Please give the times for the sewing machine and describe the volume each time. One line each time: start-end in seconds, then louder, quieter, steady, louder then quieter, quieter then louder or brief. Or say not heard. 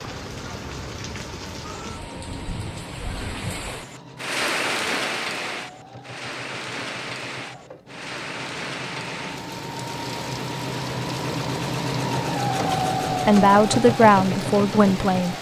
0.0-15.3 louder.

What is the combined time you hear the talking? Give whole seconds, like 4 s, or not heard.
2 s.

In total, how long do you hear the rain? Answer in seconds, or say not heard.
15 s.